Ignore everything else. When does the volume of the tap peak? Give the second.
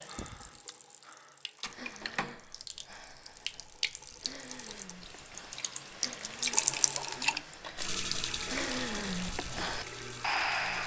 7 s.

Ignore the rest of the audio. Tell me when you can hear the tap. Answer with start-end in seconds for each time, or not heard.
0.0-10.8.